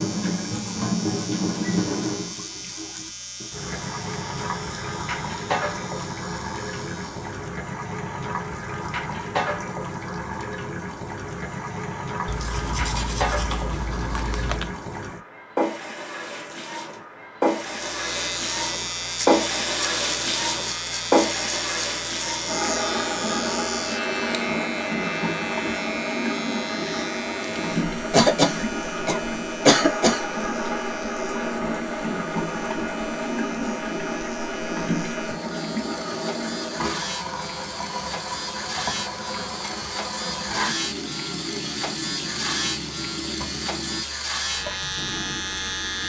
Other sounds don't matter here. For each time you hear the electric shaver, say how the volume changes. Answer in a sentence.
You can hear the electric shaver from 0.0 to 7.5 s, getting quieter; and from 17.6 to 46.0 s, getting quieter then louder.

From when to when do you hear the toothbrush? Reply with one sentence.
You can hear the toothbrush from 12.2 to 14.8 s.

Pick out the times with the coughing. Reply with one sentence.
You can hear the coughing from 28.1 to 30.2 s.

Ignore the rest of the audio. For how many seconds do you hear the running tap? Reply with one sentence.
You can hear the running tap for 46 seconds altogether.